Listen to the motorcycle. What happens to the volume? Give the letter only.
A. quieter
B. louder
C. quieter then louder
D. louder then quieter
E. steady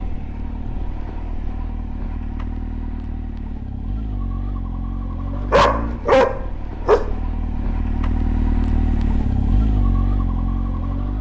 B.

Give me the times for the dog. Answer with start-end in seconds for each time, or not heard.
5.5-7.2.